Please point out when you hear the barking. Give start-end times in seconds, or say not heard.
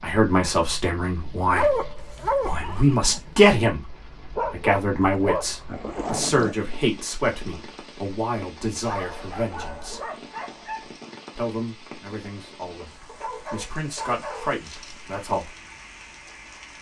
1.6-2.5, 4.3-6.5, 8.8-10.9, 13.1-15.0.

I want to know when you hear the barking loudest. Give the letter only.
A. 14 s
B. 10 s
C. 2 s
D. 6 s
C.